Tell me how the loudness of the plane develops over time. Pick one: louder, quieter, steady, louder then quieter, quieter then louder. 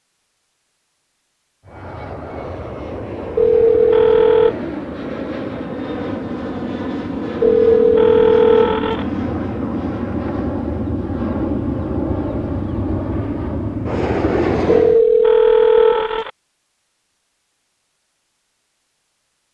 louder.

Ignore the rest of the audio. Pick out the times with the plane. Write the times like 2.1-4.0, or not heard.
1.6-15.0.